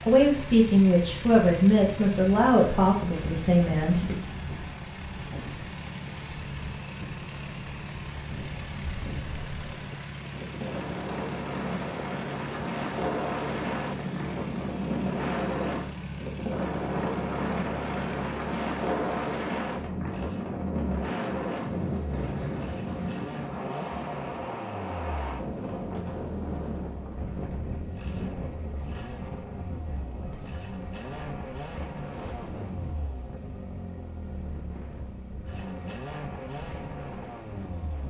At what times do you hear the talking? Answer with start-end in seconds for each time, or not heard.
0.1-4.2.